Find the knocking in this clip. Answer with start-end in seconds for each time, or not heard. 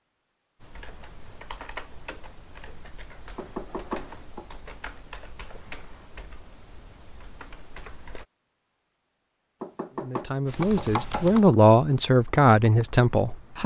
3.4-4.6, 9.6-11.4.